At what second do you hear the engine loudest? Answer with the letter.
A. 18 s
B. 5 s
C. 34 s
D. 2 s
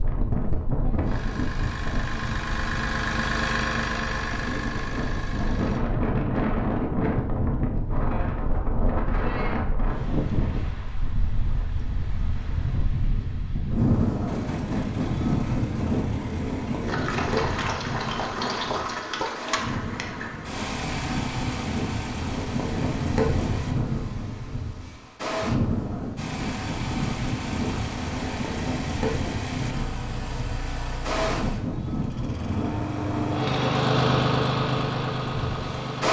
C.